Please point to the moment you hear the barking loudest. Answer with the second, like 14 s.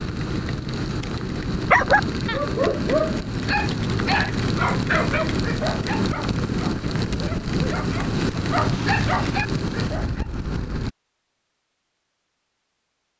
2 s.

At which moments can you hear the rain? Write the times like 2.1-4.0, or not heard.
0.0-10.9.